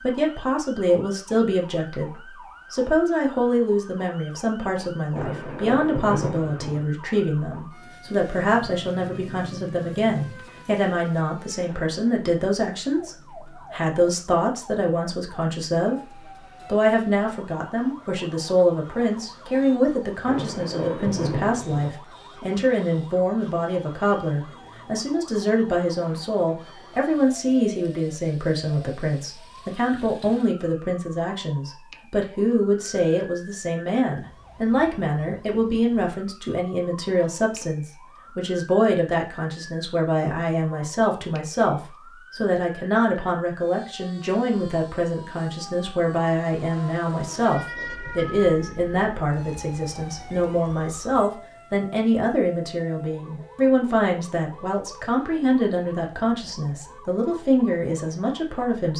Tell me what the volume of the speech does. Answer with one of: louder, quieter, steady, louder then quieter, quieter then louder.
steady.